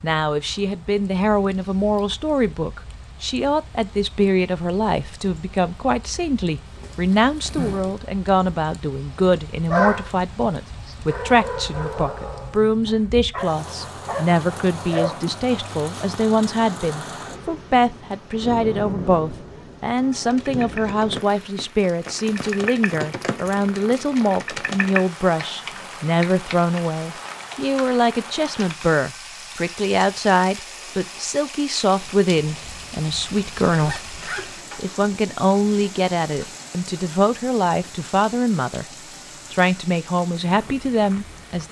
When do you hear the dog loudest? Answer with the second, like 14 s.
10 s.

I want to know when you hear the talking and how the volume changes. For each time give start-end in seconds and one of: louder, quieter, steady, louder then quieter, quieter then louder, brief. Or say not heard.
0.0-38.9 steady
39.5-41.6 brief.